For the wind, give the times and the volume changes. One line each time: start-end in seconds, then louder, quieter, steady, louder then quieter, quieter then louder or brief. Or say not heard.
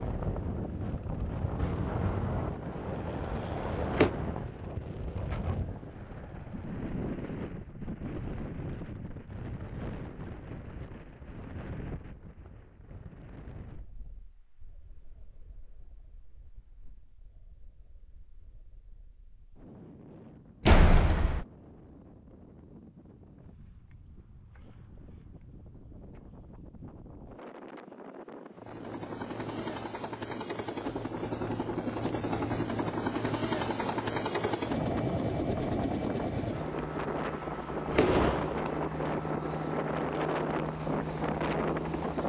0.0-42.2 quieter then louder.